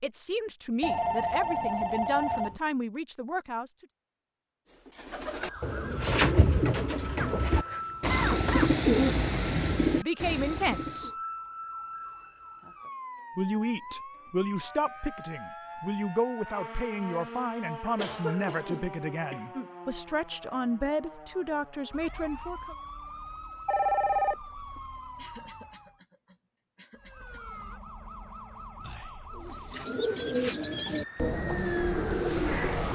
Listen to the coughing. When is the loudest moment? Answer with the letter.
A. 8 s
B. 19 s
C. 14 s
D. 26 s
A.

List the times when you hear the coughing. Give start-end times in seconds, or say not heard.
7.4-8.8, 17.9-19.7, 25.1-27.6.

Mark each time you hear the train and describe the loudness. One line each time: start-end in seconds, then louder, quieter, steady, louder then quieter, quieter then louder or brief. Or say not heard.
not heard.